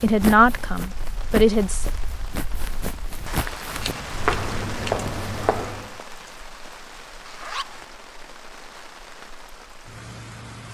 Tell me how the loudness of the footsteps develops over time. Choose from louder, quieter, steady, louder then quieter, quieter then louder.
quieter then louder.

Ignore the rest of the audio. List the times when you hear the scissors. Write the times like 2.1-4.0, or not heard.
3.8-5.1.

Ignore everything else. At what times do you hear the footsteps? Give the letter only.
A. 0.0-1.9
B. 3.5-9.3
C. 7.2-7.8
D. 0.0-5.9
D.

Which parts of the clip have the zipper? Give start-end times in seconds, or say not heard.
7.2-7.8.